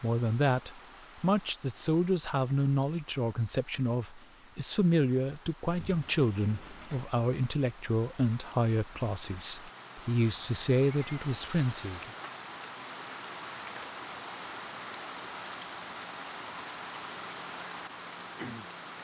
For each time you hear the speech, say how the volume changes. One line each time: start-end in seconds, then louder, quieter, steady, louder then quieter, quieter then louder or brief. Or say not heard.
0.0-12.1 steady.